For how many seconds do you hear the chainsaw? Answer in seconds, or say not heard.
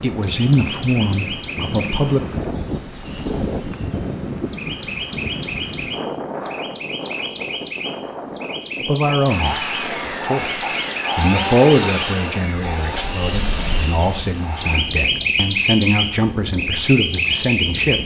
6 s.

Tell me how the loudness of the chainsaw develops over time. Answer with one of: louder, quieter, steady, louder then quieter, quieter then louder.
quieter.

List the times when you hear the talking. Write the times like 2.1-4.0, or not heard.
0.0-2.2, 8.8-18.0.